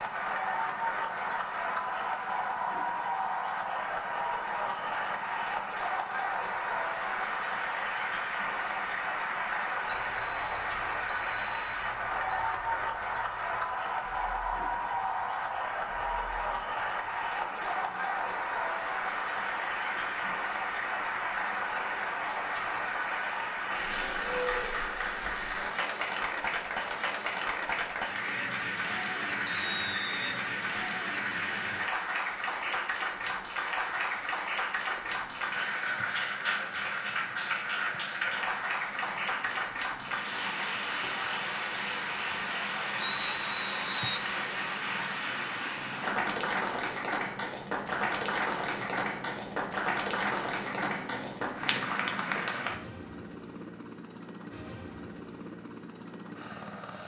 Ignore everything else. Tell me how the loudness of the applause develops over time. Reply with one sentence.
The volume of the applause stays about the same.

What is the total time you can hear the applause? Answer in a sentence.
You can hear the applause for 53 seconds altogether.